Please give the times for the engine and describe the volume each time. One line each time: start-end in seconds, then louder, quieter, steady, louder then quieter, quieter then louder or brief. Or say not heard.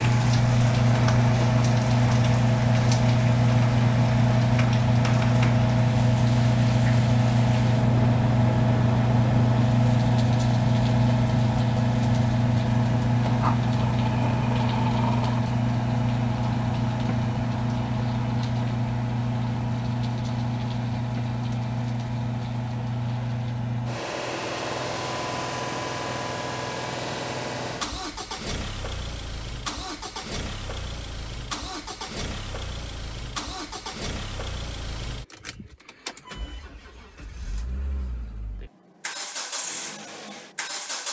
0.0-41.0 quieter.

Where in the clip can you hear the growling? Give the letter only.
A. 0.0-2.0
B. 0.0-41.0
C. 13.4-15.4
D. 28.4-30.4
C.